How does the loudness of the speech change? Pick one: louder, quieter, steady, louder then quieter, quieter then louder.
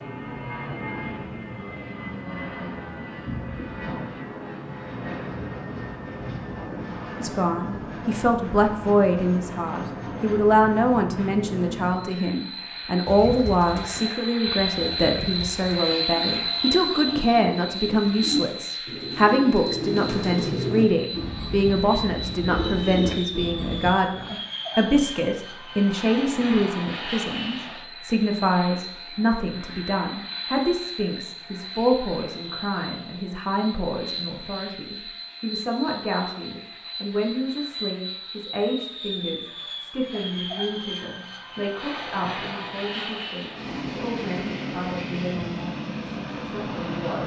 quieter.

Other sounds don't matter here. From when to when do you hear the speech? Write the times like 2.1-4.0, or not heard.
7.2-47.2.